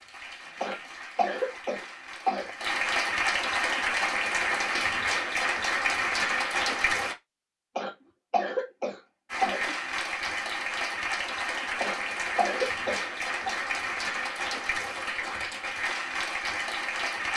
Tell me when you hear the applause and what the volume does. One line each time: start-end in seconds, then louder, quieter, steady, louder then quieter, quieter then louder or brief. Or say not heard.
0.0-7.2 louder
9.2-17.3 steady.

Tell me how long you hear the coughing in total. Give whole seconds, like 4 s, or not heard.
6 s.